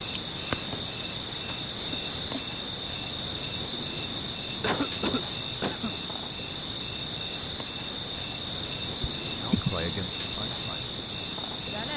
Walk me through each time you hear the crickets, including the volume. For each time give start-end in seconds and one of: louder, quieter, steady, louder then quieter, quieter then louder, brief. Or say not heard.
0.0-11.9 steady.